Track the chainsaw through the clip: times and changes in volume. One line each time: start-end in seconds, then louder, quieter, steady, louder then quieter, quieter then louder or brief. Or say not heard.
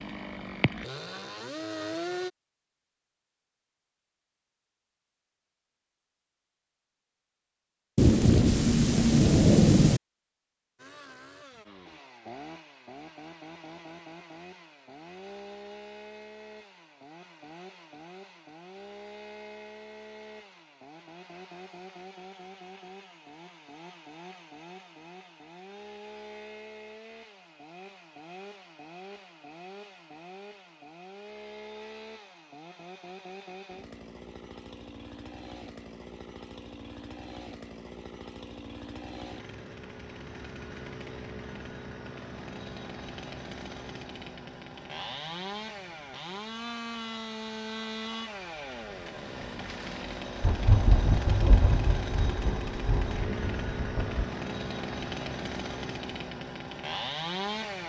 0.0-2.3 brief
10.8-57.8 louder.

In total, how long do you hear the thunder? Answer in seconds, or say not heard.
6 s.